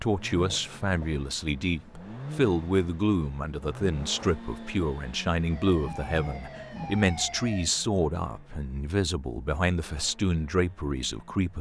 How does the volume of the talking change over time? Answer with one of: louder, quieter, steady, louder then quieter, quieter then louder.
steady.